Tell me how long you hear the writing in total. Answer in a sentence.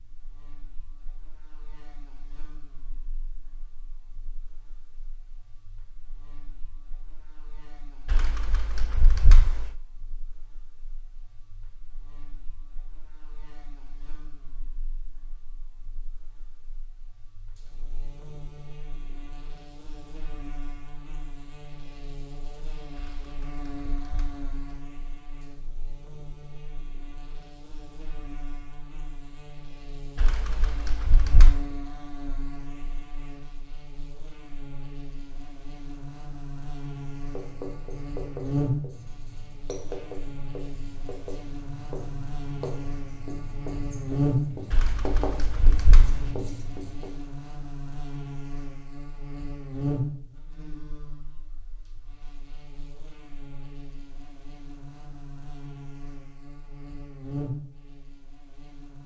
The writing can be heard for 10 seconds in total.